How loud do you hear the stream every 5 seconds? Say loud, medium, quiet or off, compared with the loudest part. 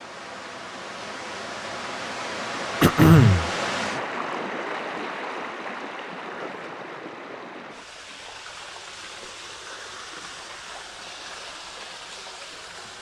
loud, medium, medium.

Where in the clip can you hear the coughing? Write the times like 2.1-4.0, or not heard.
2.8-3.5.